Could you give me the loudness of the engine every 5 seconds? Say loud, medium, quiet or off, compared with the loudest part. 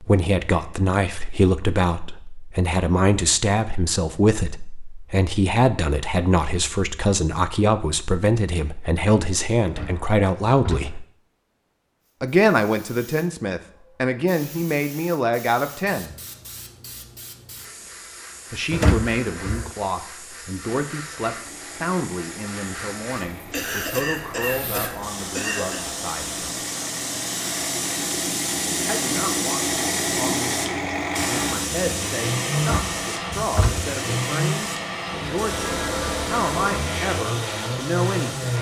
off, off, off, off, quiet, medium, loud, loud.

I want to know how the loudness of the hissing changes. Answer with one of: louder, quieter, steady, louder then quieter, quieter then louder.
louder then quieter.